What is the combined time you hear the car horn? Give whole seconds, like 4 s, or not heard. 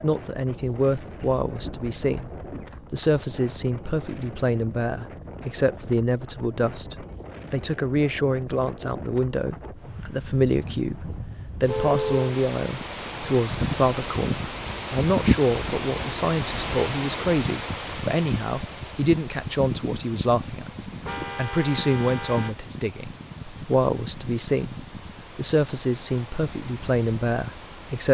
4 s.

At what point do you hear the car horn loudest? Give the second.
12 s.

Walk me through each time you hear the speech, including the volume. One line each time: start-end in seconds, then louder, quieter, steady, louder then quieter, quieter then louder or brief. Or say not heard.
0.0-28.0 steady.